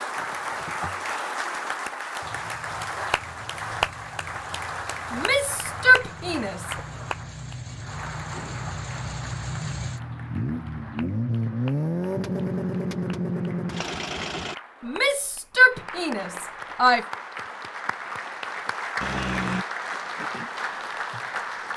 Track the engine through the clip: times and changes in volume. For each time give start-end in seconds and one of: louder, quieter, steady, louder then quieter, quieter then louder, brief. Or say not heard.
2.2-14.6 louder.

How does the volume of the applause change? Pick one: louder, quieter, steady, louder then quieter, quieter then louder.
quieter then louder.